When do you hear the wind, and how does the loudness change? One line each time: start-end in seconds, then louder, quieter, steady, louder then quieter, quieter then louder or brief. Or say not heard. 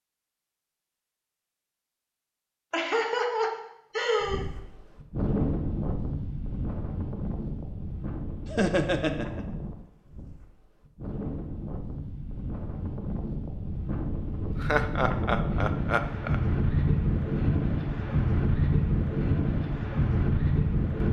4.2-21.0 quieter then louder.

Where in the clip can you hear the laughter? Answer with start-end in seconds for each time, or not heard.
2.7-4.5, 8.4-9.4, 14.6-16.4.